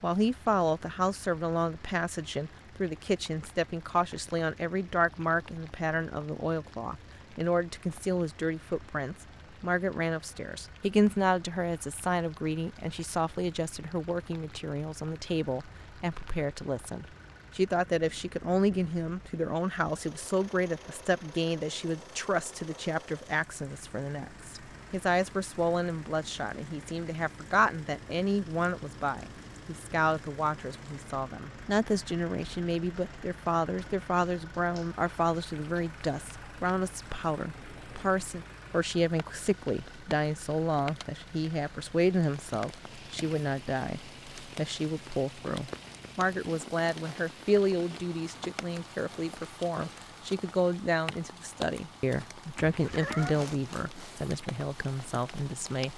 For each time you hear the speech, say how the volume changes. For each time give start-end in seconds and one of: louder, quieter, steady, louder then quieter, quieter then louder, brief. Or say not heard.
0.0-55.9 steady.